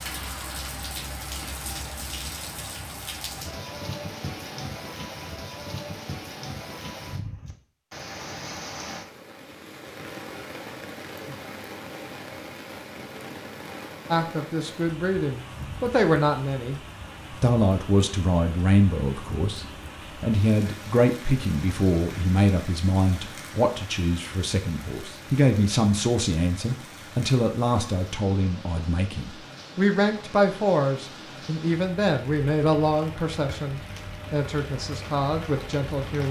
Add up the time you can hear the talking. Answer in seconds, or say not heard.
22 s.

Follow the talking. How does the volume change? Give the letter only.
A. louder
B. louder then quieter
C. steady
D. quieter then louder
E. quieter
C.